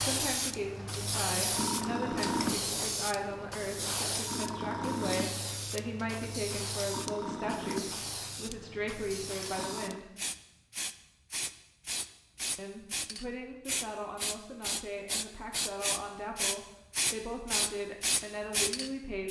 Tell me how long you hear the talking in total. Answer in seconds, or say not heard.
17 s.